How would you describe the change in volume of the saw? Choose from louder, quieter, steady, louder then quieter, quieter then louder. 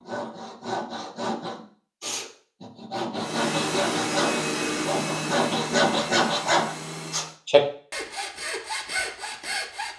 louder then quieter.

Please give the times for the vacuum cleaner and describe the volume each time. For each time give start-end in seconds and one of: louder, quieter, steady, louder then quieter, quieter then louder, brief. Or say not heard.
3.1-7.4 quieter.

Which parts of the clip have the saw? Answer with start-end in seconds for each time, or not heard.
0.0-9.9.